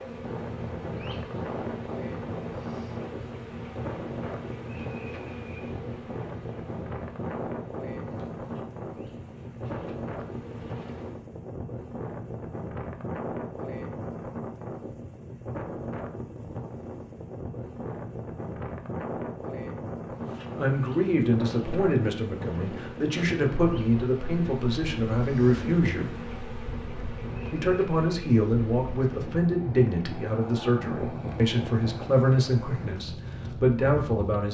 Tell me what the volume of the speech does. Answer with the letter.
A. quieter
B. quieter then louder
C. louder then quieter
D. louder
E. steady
E.